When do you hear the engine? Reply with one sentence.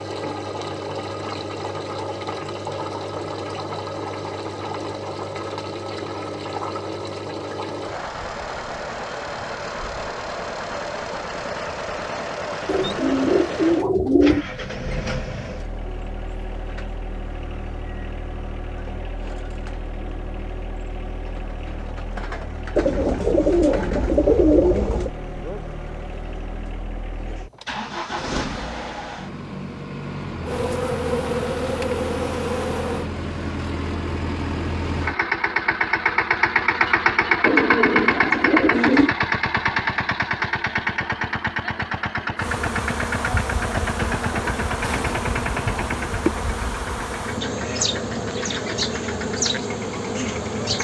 You can hear the engine from 0.0 to 50.7 s.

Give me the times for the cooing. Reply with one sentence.
The cooing can be heard from 12.7 to 14.4 s, from 22.8 to 25.1 s and from 37.4 to 39.1 s.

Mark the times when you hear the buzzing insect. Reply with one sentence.
The buzzing insect can be heard from 30.4 to 33.1 s and from 42.4 to 50.7 s.